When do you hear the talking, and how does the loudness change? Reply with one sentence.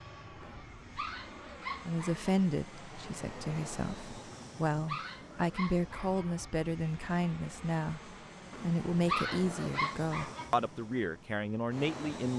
You can hear the talking from 1.9 to 12.3 s, at a steady volume.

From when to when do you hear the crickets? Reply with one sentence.
The crickets can't be heard in this clip.